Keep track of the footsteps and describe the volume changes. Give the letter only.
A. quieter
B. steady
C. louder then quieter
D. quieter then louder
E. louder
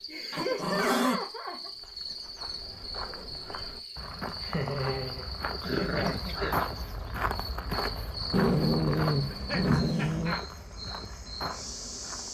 C.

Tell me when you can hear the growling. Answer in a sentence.
The growling can be heard from 0.3 to 1.2 s, from 5.6 to 6.5 s and from 8.3 to 10.3 s.